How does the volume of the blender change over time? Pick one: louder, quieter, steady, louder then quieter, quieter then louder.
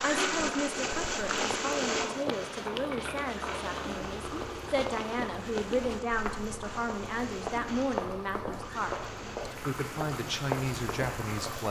quieter.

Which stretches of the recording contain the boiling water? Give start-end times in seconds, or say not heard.
0.0-11.6.